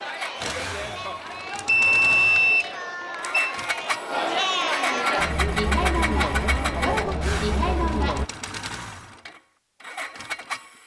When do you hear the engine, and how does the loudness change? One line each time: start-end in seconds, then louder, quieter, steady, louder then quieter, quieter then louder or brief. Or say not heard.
0.0-10.8 louder then quieter.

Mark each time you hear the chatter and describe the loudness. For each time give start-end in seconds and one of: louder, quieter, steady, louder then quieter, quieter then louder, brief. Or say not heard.
0.0-8.3 louder.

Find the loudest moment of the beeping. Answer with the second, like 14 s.
2 s.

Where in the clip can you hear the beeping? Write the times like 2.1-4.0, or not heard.
1.5-3.5.